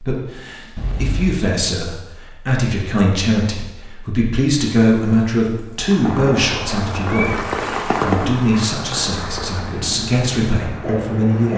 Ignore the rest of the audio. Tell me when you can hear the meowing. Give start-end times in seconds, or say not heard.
0.8-1.4, 6.4-7.3.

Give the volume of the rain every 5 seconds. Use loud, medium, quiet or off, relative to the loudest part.
off, loud, loud.